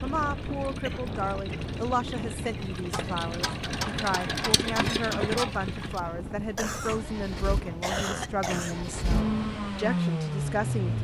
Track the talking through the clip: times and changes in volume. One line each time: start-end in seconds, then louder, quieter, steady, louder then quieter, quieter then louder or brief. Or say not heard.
0.0-10.9 steady.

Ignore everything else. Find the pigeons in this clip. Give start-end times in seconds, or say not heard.
not heard.